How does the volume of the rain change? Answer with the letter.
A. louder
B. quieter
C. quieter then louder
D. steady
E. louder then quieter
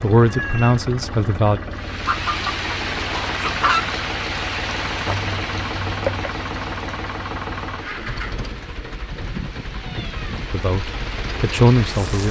C.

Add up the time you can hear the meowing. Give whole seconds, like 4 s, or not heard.
4 s.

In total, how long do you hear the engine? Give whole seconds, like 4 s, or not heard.
12 s.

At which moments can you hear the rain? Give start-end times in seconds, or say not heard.
1.7-12.2.